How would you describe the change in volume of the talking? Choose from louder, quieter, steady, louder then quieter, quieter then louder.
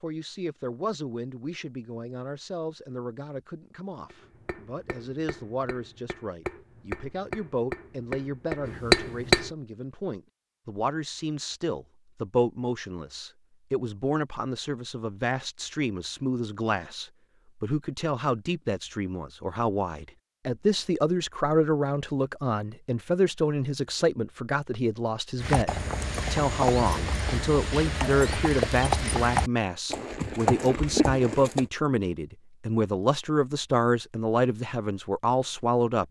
louder.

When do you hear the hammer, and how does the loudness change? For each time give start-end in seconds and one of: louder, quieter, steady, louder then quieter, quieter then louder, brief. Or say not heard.
4.1-9.5 louder.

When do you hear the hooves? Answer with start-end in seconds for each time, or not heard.
25.4-31.6.